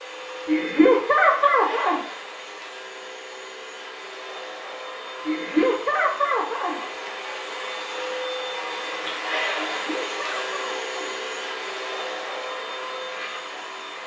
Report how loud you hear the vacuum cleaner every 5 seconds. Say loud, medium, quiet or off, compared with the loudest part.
medium, loud, loud.